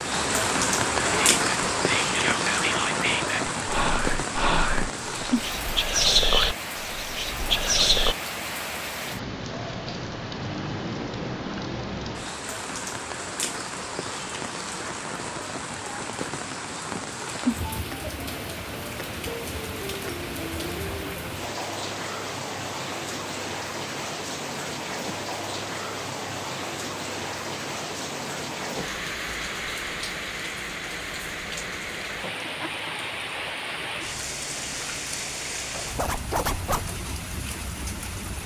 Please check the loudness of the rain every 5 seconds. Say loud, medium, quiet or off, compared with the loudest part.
loud, medium, medium, medium, medium, medium, medium, medium.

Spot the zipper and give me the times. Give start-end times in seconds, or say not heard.
0.9-1.4, 36.0-36.9.